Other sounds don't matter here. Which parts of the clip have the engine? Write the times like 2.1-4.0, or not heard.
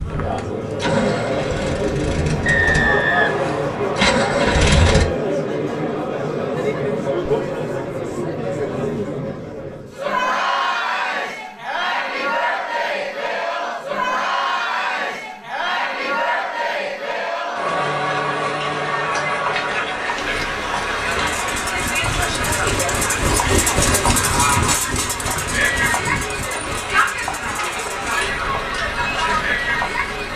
0.0-5.1, 20.1-30.3.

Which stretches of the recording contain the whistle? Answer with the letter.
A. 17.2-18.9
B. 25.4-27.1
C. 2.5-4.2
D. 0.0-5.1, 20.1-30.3
C.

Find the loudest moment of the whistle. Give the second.
3 s.